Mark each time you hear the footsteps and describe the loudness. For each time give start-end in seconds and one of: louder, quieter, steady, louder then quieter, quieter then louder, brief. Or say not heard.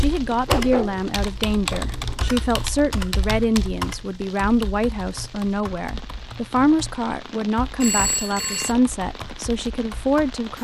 not heard.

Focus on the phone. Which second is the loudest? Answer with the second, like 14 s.
8 s.